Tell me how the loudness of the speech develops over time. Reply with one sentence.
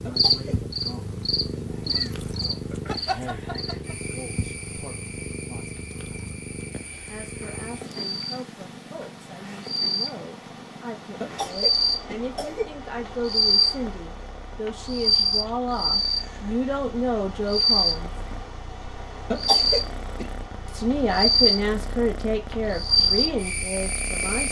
The volume of the speech goes up.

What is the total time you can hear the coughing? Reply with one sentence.
The coughing can be heard for 3 seconds in total.